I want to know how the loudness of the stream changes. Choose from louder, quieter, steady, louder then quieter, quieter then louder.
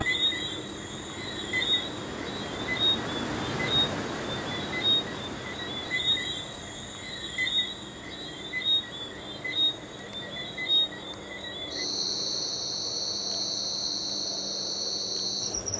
louder then quieter.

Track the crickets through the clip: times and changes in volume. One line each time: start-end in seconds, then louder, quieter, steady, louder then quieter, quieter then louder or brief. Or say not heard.
0.0-15.7 steady.